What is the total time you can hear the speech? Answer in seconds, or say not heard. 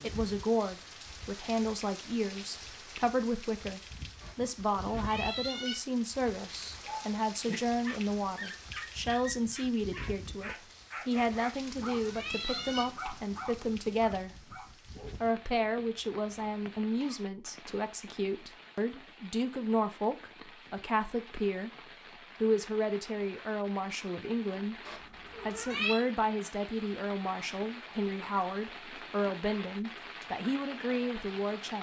30 s.